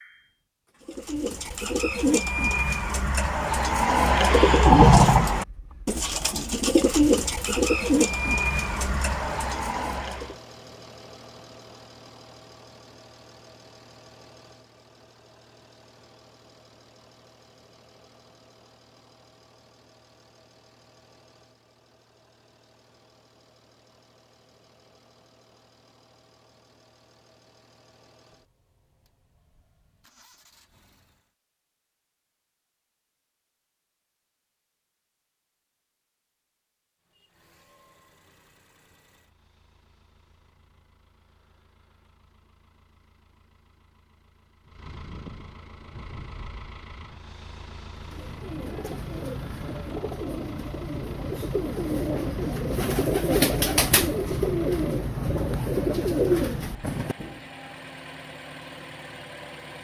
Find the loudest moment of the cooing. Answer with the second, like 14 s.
5 s.